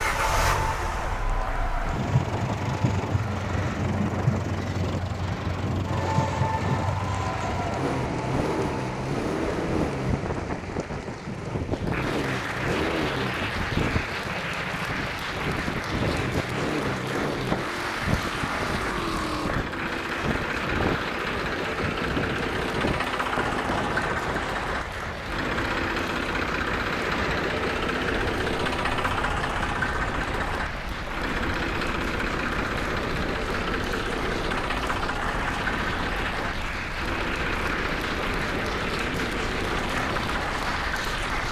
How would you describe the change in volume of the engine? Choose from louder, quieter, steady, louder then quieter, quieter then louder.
steady.